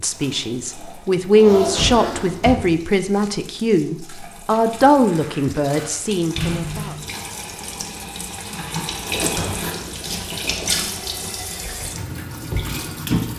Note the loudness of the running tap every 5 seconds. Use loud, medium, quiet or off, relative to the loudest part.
quiet, medium, loud.